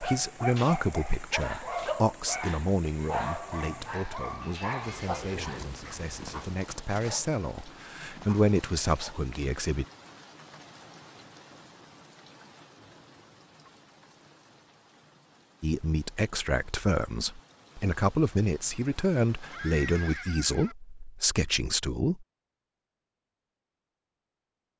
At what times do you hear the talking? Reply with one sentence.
The talking can be heard from 0.0 to 9.8 s and from 15.6 to 22.2 s.